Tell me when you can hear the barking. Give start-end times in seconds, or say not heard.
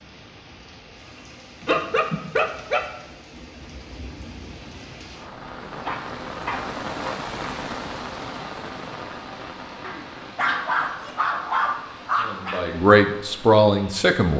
1.6-2.9, 5.8-7.2, 9.8-12.6.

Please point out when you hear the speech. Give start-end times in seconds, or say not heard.
12.2-14.3.